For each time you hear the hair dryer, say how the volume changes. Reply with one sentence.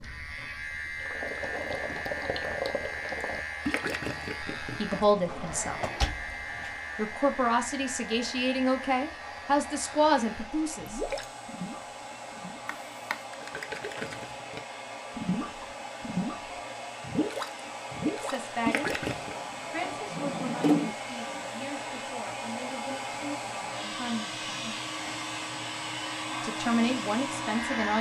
You can hear the hair dryer from 0.2 to 27.9 s, getting louder.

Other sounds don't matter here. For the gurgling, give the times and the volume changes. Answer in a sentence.
You can hear the gurgling from 0.0 to 5.4 s, getting louder then quieter; and from 10.8 to 19.4 s, getting louder.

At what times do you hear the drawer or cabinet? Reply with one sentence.
The drawer or cabinet can be heard from 5.2 to 6.7 s, from 12.7 to 13.2 s and from 19.4 to 20.9 s.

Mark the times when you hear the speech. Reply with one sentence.
You can hear the speech from 4.6 to 5.8 s, from 7.0 to 11.0 s, from 18.2 to 19.0 s, from 19.7 to 24.8 s and from 26.4 to 27.9 s.